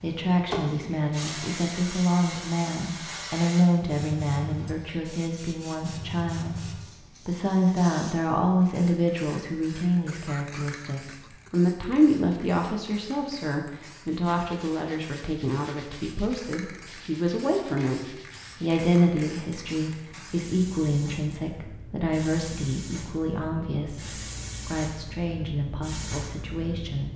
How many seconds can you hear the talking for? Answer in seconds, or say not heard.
27 s.